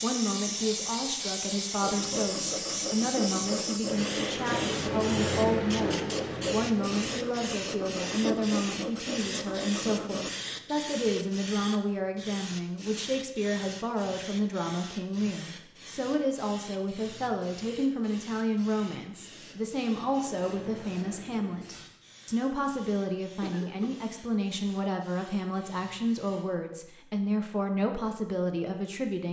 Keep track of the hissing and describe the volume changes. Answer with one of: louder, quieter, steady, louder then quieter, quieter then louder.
quieter.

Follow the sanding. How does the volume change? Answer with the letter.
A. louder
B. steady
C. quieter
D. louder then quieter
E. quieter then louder
B.